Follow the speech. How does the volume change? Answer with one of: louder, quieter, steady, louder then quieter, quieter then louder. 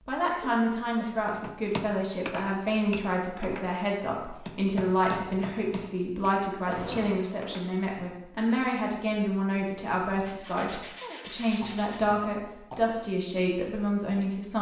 steady.